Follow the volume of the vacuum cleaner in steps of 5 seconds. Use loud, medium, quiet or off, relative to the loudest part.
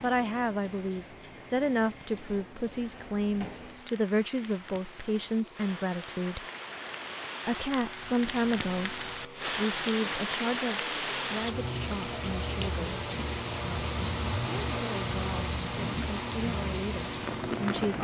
quiet, quiet, loud, loud.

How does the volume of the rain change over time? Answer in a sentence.
The volume of the rain goes up.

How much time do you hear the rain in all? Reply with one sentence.
You can hear the rain for 18 seconds altogether.